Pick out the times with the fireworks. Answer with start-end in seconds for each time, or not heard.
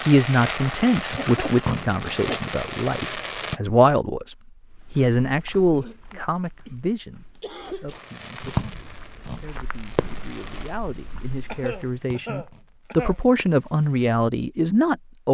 0.0-3.6, 7.9-14.2.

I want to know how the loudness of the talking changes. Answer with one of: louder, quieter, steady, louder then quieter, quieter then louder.
quieter then louder.